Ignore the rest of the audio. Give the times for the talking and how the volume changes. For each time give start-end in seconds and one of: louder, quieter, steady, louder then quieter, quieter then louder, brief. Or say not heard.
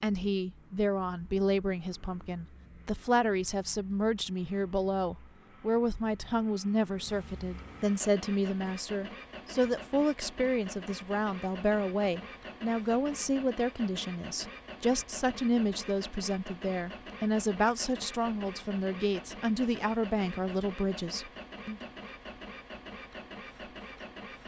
0.0-21.9 steady.